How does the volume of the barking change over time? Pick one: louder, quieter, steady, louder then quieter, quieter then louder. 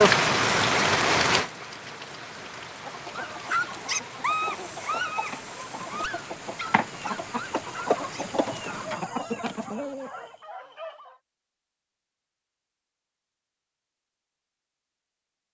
quieter.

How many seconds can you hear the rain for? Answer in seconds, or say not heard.
9 s.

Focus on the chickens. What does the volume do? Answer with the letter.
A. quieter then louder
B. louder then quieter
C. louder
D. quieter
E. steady
C.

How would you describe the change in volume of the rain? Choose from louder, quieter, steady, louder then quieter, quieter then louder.
quieter.